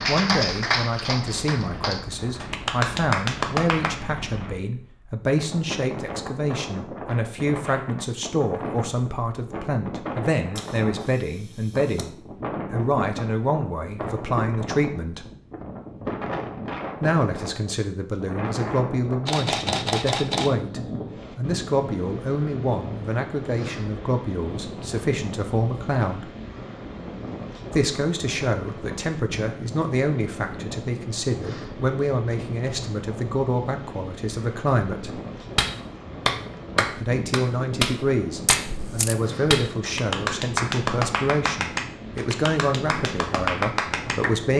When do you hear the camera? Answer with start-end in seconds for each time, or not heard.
10.6-12.1, 19.2-20.6, 38.5-39.1.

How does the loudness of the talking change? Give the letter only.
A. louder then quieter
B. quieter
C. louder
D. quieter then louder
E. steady
E.